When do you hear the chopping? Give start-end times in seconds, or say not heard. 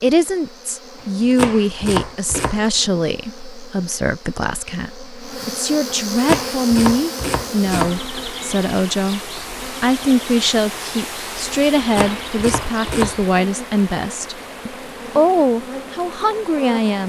1.0-2.6, 5.9-8.0, 11.6-13.2.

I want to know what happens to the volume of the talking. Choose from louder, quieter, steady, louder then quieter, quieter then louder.
steady.